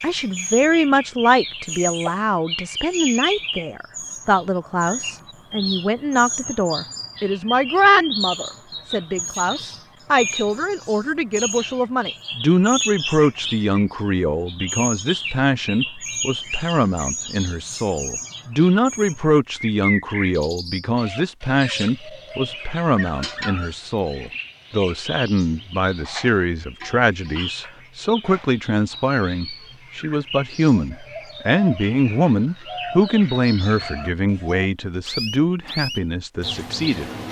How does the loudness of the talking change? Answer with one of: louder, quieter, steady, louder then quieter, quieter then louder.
steady.